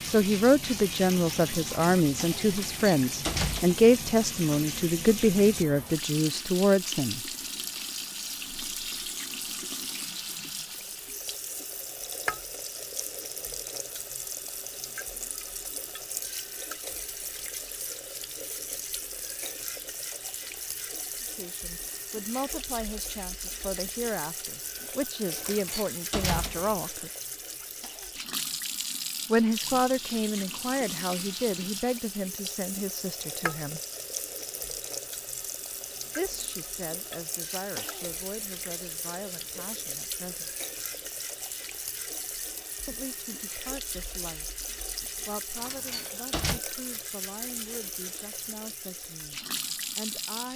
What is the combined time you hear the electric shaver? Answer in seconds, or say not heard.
not heard.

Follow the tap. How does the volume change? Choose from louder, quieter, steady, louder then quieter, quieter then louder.
steady.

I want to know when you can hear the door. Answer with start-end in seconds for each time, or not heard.
2.5-4.0, 25.4-26.8, 45.5-46.6.